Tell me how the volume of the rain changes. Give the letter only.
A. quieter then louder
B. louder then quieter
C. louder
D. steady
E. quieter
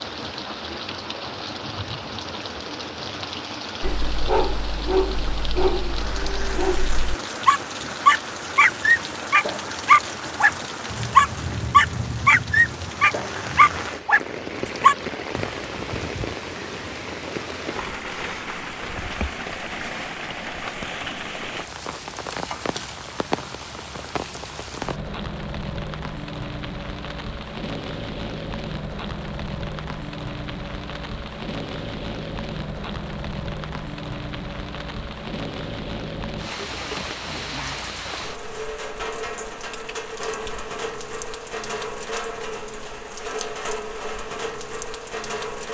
D.